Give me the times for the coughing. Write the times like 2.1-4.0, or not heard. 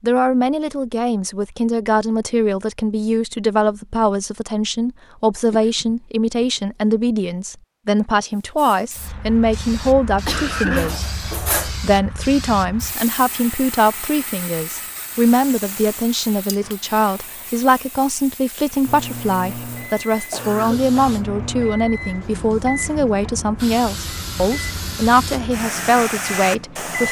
5.5-6.5, 10.0-11.0, 20.1-21.1.